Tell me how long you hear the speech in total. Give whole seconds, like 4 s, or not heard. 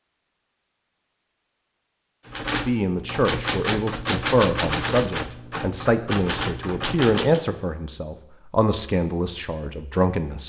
8 s.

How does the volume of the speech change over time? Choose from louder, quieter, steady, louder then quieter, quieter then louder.
steady.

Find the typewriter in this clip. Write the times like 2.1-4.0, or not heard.
2.2-7.4.